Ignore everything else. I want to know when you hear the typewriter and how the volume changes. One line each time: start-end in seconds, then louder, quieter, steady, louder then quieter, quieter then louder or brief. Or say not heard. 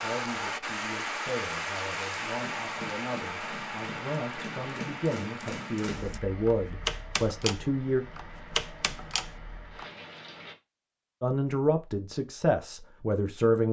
2.4-9.8 louder.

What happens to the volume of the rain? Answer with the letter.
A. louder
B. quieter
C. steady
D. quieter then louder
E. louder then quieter
B.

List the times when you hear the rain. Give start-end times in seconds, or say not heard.
0.0-10.6.